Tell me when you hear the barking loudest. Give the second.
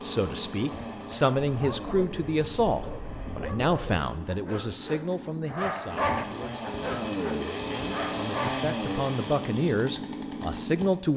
6 s.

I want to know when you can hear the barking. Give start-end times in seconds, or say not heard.
1.5-8.6.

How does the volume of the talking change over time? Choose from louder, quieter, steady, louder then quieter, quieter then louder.
quieter then louder.